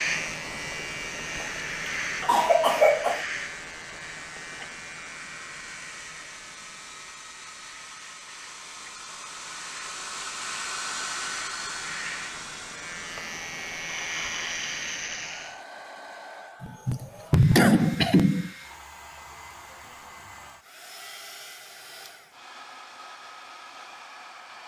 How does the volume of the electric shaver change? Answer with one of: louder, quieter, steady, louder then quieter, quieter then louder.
quieter then louder.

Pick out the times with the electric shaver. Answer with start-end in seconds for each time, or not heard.
0.0-15.6.